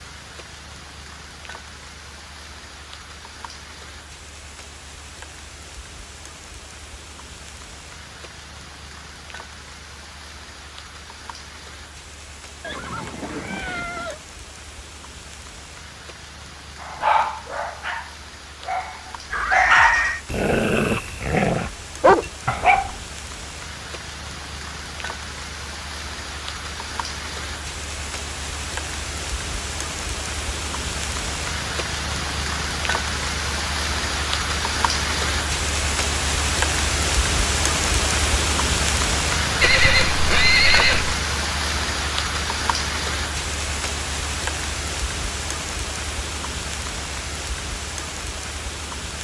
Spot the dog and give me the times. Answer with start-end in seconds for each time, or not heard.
16.8-23.0.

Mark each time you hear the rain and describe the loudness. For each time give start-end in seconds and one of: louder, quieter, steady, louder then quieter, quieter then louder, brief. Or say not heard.
0.0-49.2 louder.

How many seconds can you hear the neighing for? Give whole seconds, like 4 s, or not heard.
4 s.